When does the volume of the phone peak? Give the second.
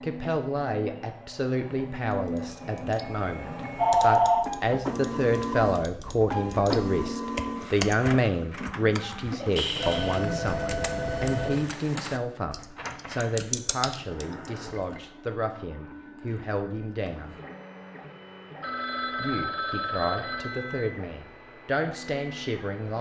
4 s.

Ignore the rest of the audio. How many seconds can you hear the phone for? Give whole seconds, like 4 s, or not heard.
5 s.